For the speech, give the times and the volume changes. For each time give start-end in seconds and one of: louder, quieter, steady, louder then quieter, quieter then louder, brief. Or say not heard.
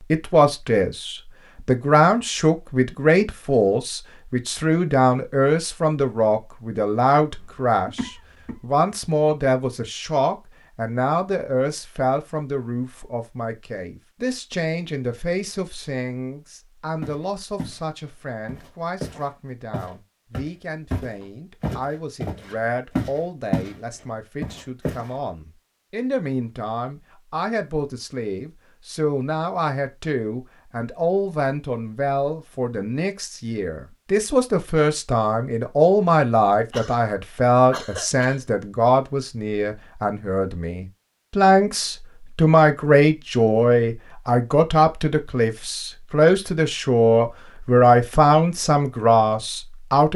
0.1-50.1 quieter then louder.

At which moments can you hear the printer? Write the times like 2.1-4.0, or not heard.
not heard.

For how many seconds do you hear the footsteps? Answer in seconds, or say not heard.
7 s.